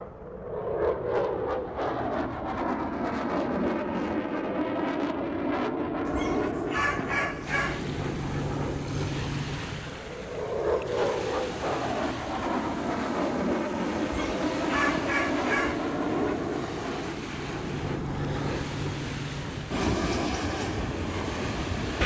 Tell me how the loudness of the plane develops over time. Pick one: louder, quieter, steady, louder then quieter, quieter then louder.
steady.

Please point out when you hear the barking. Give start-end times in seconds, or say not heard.
6.0-7.8, 14.0-15.8.